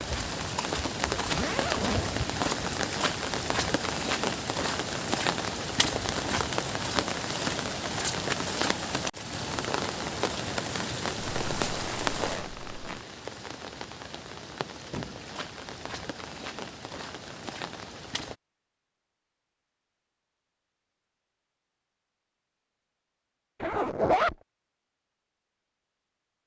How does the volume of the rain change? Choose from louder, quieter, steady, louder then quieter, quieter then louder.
quieter.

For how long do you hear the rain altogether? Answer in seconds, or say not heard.
18 s.